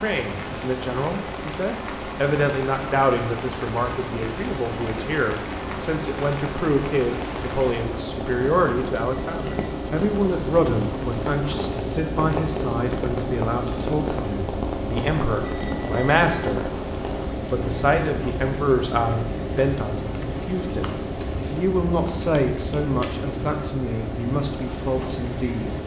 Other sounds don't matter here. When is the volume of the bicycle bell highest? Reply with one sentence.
The loudest moment of the bicycle bell is at 16 seconds.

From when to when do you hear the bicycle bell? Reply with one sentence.
The bicycle bell can be heard from 8.9 to 10.0 s and from 15.4 to 16.5 s.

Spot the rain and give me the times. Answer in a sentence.
The rain can be heard from 0.0 to 25.8 s.